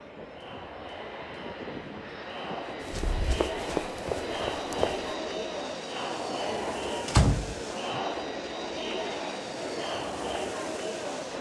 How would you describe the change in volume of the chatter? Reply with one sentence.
The volume of the chatter goes up.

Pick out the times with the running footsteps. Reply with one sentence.
The running footsteps can be heard from 2.8 to 5.2 s.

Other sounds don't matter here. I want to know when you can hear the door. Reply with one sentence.
You can hear the door from 2.9 to 3.5 s and from 7.0 to 8.0 s.